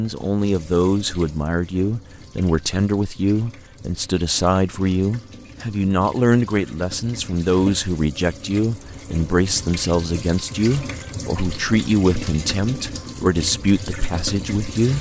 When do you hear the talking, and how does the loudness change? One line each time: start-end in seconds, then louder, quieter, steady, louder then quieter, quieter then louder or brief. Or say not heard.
0.0-14.9 steady.